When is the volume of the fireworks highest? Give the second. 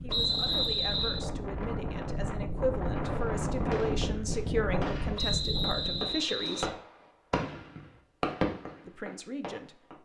8 s.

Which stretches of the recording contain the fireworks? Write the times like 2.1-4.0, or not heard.
3.1-5.3, 6.0-9.9.